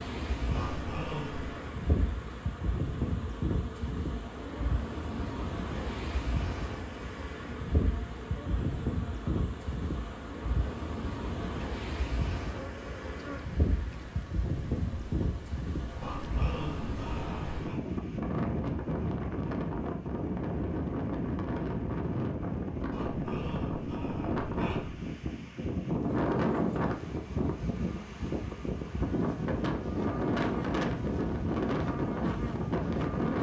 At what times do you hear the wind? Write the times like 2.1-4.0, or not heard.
0.0-33.3.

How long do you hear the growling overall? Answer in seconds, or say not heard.
5 s.